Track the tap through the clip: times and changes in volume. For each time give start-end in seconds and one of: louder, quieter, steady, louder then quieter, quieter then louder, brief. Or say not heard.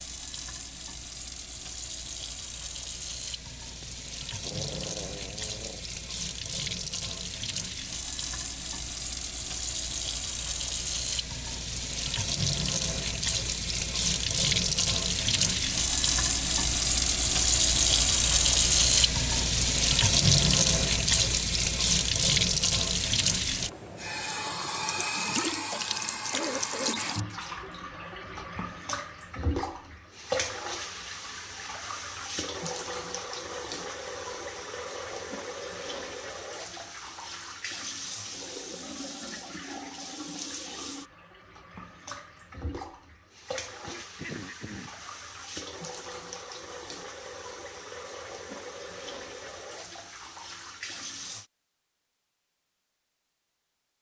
0.0-51.5 louder then quieter.